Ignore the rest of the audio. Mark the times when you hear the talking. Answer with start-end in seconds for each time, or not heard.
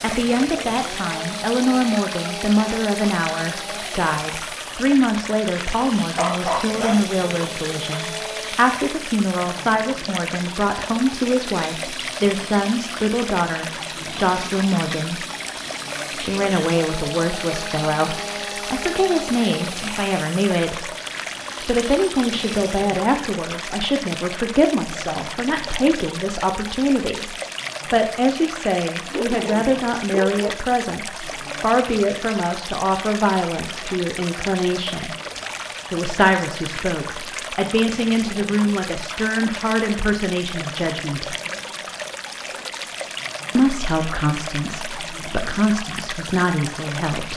0.0-15.2, 16.1-20.9, 21.6-35.1, 35.9-41.4, 43.5-47.3.